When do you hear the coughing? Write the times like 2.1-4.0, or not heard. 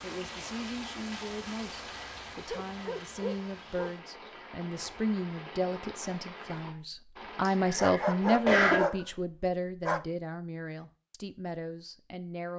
7.6-9.1.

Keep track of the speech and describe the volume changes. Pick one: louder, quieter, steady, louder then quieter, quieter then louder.
louder then quieter.